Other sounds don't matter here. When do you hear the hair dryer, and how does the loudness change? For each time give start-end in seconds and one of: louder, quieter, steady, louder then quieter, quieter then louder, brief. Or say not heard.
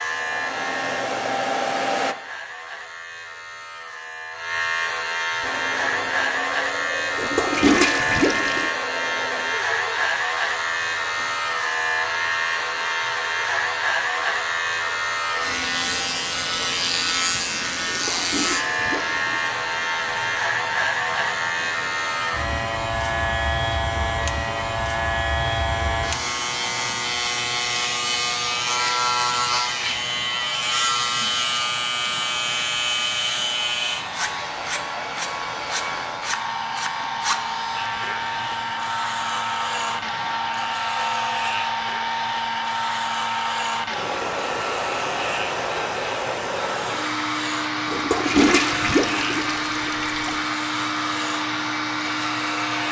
0.0-2.1 brief
5.4-52.8 louder.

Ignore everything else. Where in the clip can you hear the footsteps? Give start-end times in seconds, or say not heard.
not heard.